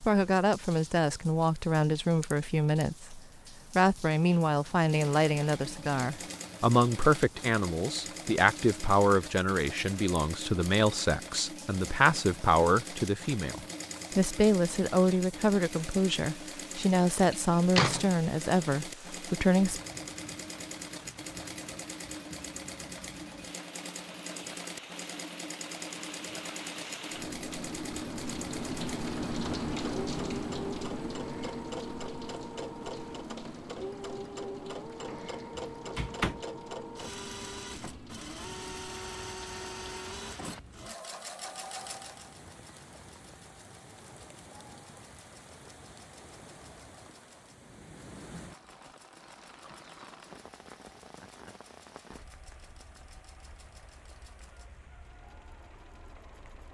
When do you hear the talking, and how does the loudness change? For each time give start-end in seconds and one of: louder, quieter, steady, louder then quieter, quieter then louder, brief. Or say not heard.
0.0-19.8 steady.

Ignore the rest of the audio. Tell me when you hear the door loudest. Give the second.
18 s.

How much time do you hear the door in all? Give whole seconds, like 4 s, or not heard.
2 s.